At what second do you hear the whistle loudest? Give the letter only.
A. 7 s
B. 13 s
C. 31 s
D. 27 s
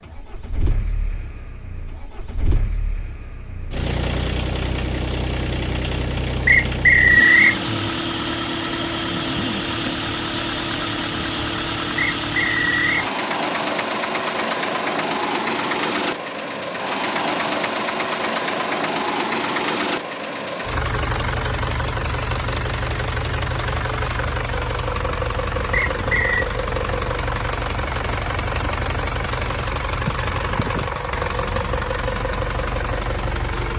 A.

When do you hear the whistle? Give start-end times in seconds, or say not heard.
6.5-7.6, 11.9-13.1, 25.9-26.4.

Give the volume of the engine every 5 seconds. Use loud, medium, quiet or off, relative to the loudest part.
medium, loud, loud, loud, loud, loud, loud.